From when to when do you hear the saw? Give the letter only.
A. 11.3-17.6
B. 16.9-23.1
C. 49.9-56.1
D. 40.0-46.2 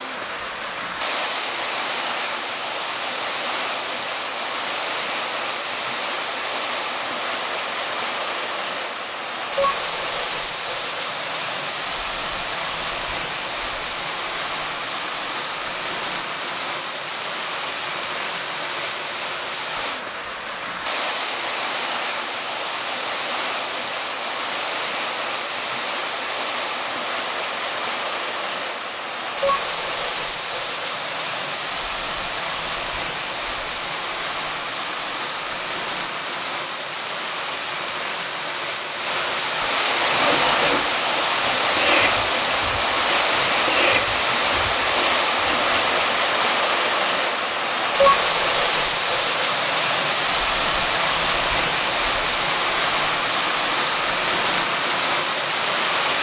D.